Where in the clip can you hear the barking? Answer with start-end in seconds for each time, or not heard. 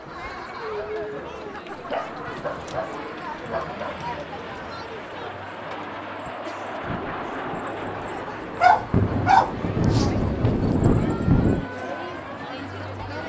1.7-4.1, 8.6-10.5.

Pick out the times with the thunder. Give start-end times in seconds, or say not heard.
6.8-11.7.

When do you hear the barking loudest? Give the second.
9 s.